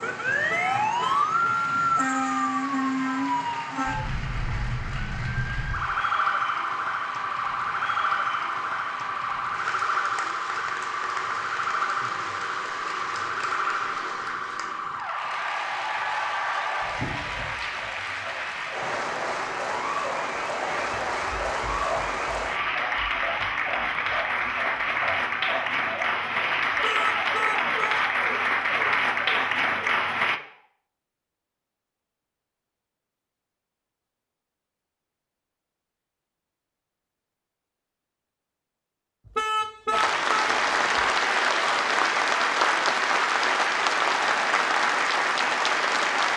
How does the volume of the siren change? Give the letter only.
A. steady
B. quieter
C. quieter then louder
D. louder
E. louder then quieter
B.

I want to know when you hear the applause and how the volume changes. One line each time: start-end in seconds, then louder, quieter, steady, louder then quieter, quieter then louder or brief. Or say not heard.
0.0-30.4 louder
39.9-46.3 steady.